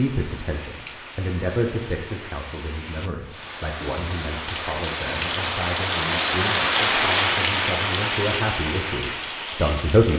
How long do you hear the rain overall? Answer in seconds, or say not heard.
10 s.